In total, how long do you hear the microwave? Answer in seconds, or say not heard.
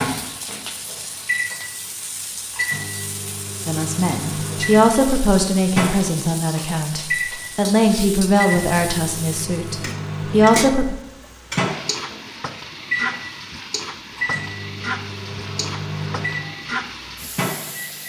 18 s.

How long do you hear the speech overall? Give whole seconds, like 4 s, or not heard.
7 s.